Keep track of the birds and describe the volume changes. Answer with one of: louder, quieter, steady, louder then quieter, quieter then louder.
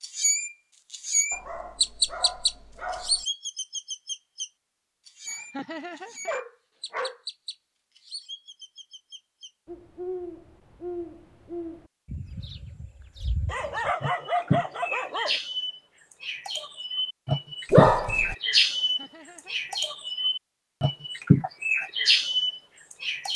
quieter then louder.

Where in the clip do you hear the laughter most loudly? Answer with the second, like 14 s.
6 s.